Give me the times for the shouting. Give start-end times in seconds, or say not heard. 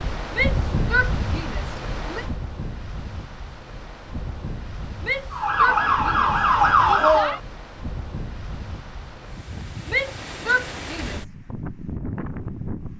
0.3-2.2, 5.0-6.3, 9.8-11.2.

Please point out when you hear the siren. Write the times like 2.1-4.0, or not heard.
5.3-7.4.